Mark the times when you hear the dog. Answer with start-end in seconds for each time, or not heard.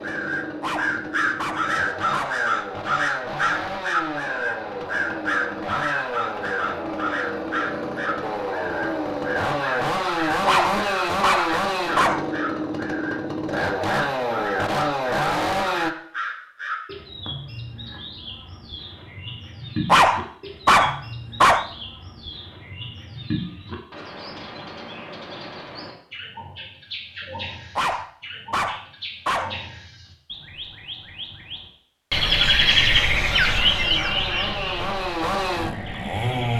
0.6-2.5, 10.4-12.3, 19.9-21.7, 27.8-29.6.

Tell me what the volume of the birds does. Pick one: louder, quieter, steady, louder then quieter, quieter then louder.
quieter then louder.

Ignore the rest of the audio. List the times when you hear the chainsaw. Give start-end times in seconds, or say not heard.
0.0-15.9, 33.0-36.5.